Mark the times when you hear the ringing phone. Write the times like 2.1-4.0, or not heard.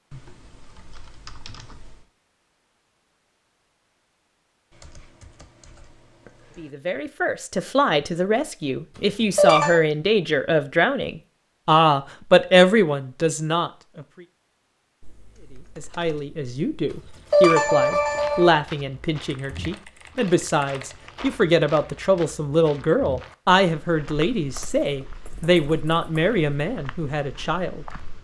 9.3-9.8, 17.3-18.5.